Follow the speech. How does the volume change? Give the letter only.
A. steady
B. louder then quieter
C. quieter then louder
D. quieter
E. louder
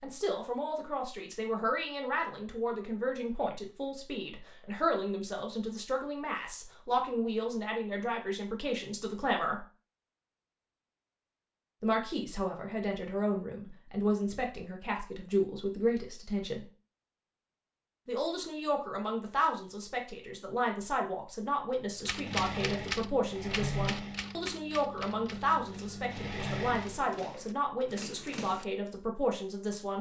A.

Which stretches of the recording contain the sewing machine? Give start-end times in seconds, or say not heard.
21.9-27.4.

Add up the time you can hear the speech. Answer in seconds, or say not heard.
26 s.